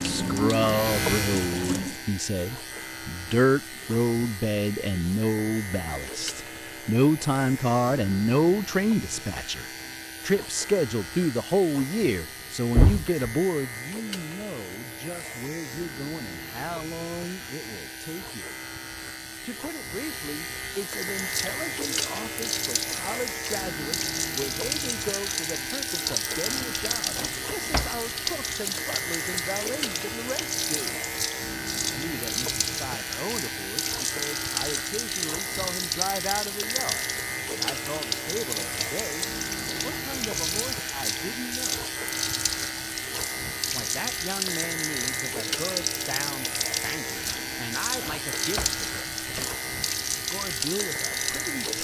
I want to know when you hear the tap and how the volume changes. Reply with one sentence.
You can hear the tap briefly from 0.0 to 2.0 s; and from 21.0 to 51.7 s, at a steady volume.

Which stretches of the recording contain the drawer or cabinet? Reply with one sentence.
The drawer or cabinet can be heard from 12.8 to 13.2 s, from 26.4 to 28.0 s and from 47.2 to 49.5 s.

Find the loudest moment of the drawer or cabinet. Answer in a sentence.
The volume of the drawer or cabinet peaks at 13 seconds.